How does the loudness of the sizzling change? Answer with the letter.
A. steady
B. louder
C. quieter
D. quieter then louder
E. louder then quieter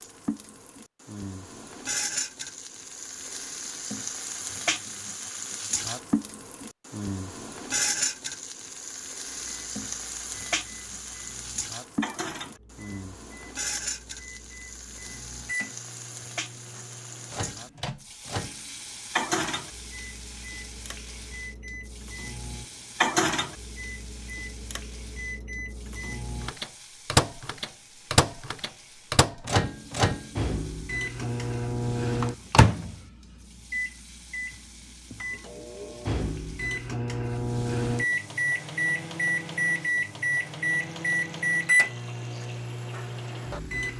C.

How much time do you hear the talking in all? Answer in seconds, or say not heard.
not heard.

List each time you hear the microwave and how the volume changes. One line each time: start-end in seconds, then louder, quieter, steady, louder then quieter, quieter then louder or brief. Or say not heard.
9.4-43.9 louder.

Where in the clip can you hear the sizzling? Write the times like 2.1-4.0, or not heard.
0.0-43.9.